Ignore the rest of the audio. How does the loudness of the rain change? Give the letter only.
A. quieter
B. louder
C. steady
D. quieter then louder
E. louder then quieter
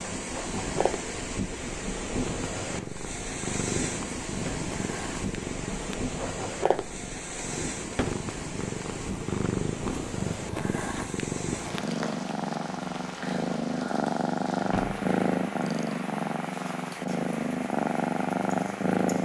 A.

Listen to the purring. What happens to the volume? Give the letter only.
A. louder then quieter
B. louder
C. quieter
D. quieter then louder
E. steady
B.